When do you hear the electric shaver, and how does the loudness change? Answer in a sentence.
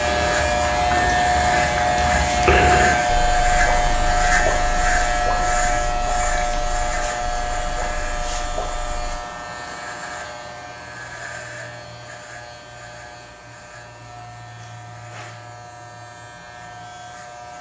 The electric shaver can be heard from 0.0 to 17.5 s, getting quieter.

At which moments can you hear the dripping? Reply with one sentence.
The dripping can be heard from 0.0 to 9.2 s.